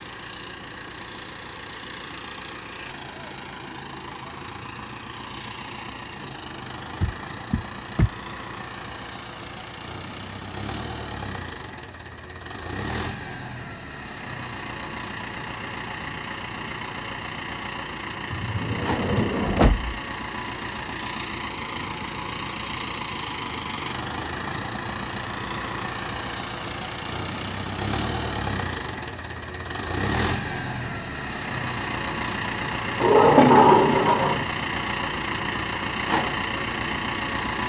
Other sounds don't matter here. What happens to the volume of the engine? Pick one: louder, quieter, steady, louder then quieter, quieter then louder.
louder.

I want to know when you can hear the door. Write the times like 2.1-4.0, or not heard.
7.0-8.2, 18.3-20.0, 33.0-34.5.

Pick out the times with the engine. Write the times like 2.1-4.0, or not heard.
0.0-37.6.